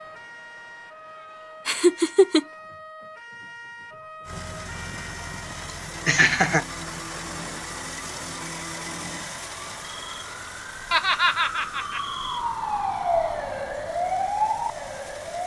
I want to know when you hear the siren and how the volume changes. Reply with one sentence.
The siren can be heard from 0.0 to 15.4 s, getting louder.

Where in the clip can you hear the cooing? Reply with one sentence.
You can't hear the cooing here.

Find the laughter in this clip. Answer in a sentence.
You can hear the laughter from 1.6 to 2.5 s, from 6.0 to 6.7 s and from 10.9 to 12.0 s.